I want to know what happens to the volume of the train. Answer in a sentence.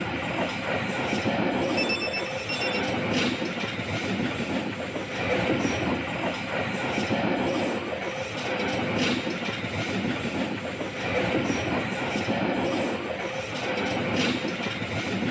The loudness of the train stays about the same.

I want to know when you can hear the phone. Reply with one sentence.
The phone can be heard from 1.8 to 2.9 s.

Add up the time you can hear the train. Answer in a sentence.
The train can be heard for 15 seconds in total.